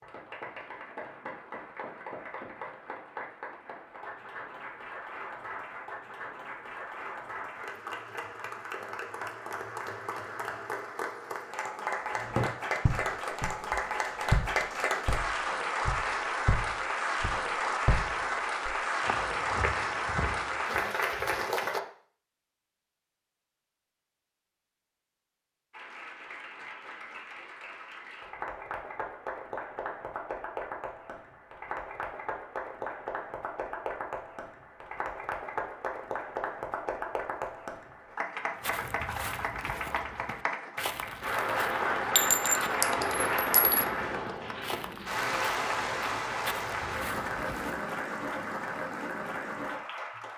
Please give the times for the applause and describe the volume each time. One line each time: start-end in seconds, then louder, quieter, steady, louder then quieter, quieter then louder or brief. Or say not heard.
0.0-21.8 louder
25.7-50.3 louder.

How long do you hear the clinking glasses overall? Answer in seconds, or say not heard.
2 s.